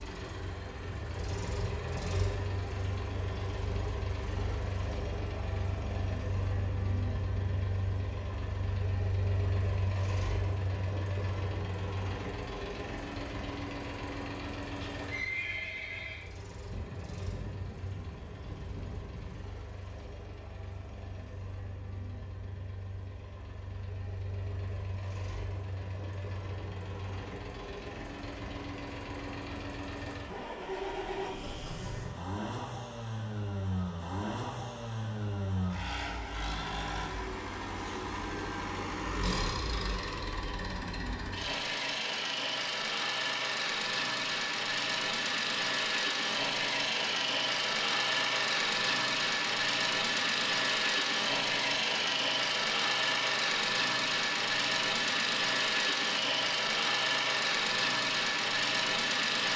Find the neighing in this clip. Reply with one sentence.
You can hear the neighing from 14.7 to 16.3 s.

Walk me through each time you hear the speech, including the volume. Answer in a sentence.
The speech can't be heard in this clip.